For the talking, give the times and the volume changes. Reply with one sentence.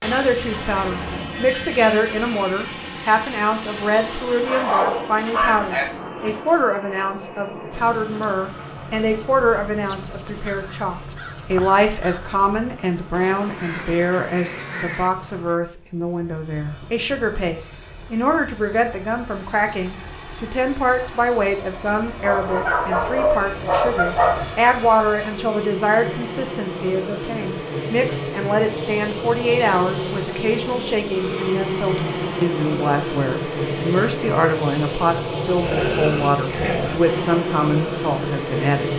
You can hear the talking from 0.0 to 38.9 s, at a steady volume.